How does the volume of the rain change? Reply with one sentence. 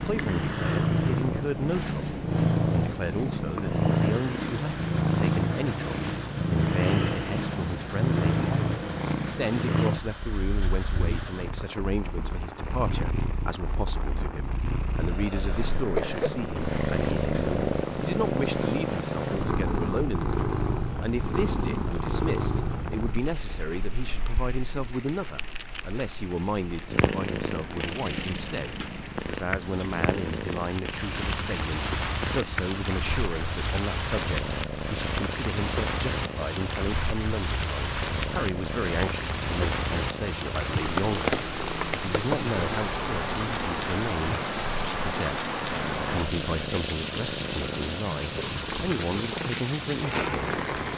The volume of the rain goes up.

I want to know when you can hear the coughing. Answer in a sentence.
The coughing can be heard from 15.0 to 16.4 s.